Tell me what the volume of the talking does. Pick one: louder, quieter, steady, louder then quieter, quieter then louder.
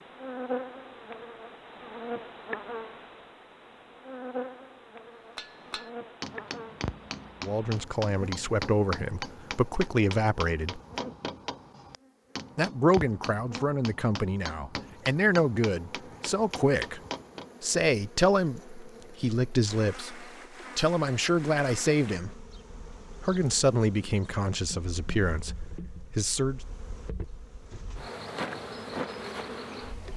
steady.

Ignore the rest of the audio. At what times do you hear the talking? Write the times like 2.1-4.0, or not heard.
7.4-10.8, 12.6-17.0, 17.6-22.3, 23.2-26.6.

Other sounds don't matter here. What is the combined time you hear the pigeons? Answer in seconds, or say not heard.
not heard.